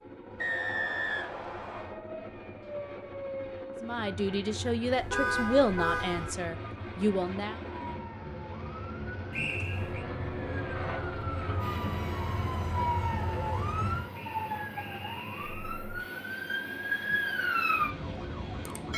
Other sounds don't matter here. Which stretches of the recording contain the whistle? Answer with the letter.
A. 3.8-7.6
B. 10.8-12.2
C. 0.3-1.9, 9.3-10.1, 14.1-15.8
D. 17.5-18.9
C.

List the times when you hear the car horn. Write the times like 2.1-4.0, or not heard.
5.0-6.3.